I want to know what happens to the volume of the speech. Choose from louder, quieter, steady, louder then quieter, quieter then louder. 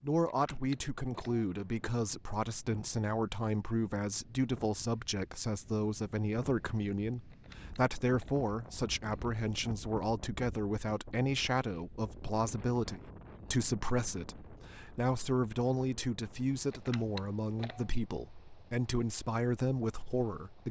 steady.